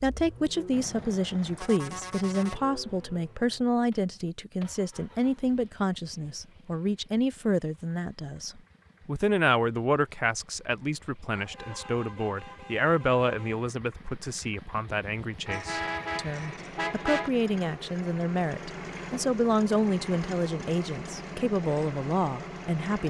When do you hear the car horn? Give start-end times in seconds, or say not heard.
0.7-2.6, 11.3-13.7, 15.4-17.3.